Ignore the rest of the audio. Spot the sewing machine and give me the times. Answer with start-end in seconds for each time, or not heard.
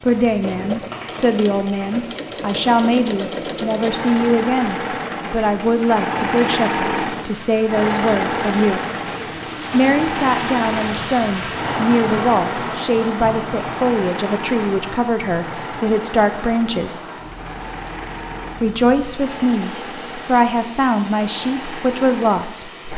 0.0-22.9.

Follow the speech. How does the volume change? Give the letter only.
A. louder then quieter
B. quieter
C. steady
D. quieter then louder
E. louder
C.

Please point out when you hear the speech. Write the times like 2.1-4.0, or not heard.
0.0-8.8, 9.7-17.1, 18.6-22.7.